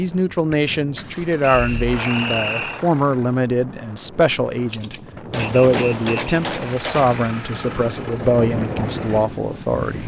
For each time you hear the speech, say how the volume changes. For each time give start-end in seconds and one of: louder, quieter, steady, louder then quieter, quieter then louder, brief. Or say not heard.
0.0-10.0 steady.